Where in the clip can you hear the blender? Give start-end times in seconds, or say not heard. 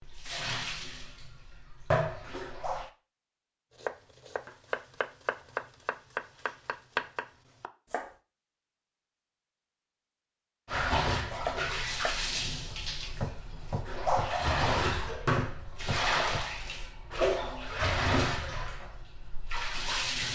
not heard.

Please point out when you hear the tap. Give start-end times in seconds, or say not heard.
0.0-2.9, 10.7-20.2.